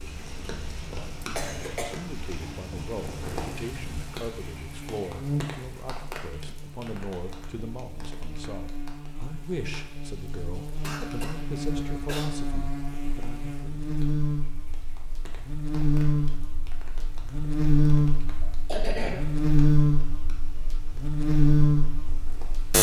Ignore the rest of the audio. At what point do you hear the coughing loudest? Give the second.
19 s.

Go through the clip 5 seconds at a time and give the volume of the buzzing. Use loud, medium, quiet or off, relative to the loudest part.
quiet, quiet, medium, loud, loud.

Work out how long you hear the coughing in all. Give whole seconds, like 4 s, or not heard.
3 s.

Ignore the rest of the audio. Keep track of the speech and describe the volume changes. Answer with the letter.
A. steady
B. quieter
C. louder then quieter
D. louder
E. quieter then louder
A.